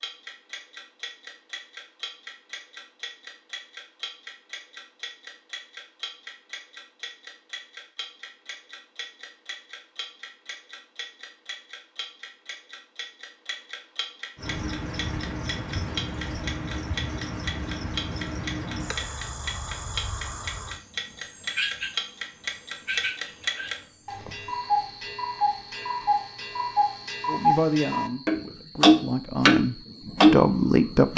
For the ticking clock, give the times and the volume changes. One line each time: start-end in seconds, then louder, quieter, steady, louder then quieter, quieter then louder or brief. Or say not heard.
0.0-31.1 louder.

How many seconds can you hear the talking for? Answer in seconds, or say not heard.
4 s.